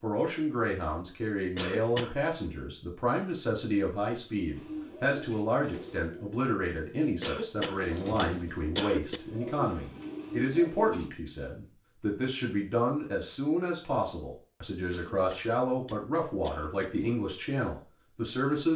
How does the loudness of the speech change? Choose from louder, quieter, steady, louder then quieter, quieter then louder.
steady.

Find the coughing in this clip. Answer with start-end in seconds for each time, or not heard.
1.6-2.1, 7.2-9.2, 14.9-16.9.